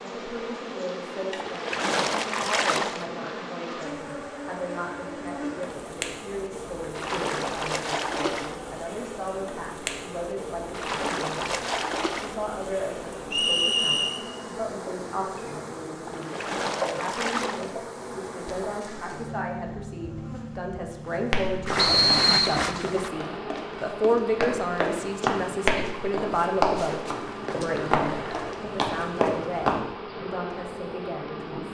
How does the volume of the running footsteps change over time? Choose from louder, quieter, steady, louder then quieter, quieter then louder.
louder.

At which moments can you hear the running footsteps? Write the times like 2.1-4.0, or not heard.
21.1-29.8.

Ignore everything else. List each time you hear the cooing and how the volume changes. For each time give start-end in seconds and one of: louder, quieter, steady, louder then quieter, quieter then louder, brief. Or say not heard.
not heard.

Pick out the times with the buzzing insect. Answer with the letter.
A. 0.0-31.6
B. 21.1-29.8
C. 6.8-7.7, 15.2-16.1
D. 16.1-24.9
A.